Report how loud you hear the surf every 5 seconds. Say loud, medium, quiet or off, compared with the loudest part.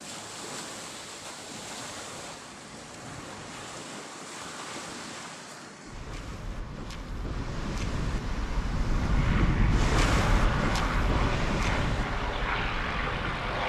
medium, loud, loud.